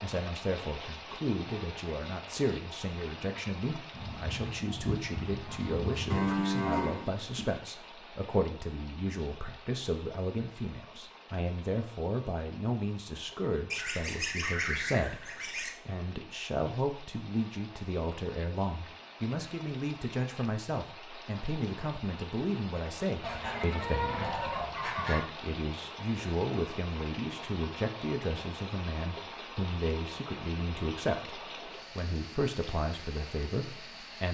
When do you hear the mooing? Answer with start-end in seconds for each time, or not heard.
6.1-7.5.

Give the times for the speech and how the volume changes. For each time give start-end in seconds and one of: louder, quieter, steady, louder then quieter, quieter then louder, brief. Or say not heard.
0.0-34.2 steady.